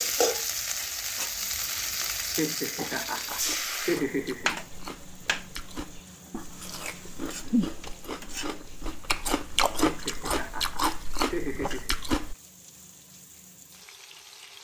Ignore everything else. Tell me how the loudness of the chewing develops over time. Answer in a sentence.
The loudness of the chewing goes up.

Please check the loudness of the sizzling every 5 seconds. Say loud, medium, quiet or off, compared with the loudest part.
loud, quiet, quiet.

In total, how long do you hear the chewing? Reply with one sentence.
You can hear the chewing for 9 seconds altogether.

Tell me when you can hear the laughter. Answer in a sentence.
The laughter can be heard from 2.4 to 4.5 s and from 9.8 to 11.9 s.